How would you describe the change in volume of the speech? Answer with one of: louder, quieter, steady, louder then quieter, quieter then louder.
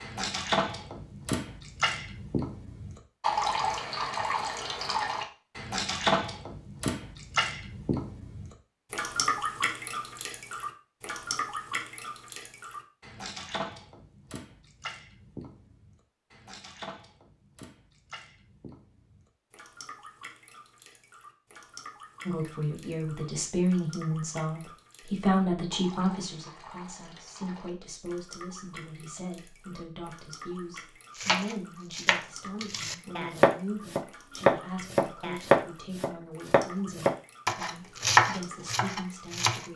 quieter.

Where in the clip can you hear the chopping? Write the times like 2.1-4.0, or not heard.
31.1-39.6.